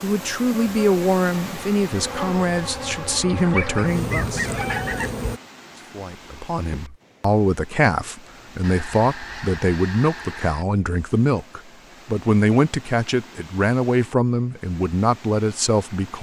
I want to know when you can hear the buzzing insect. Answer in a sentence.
The buzzing insect can be heard from 0.0 to 5.4 s.